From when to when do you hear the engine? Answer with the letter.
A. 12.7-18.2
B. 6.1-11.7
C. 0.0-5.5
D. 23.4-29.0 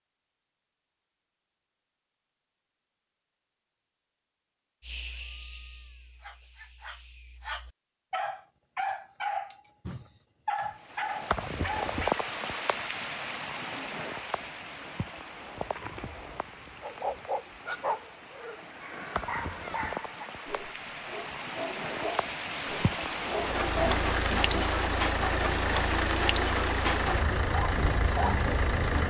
D.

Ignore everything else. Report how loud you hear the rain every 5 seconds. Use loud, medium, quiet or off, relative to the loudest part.
off, off, loud, medium, loud, loud.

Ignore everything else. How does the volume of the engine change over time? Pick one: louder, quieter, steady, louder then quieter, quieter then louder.
steady.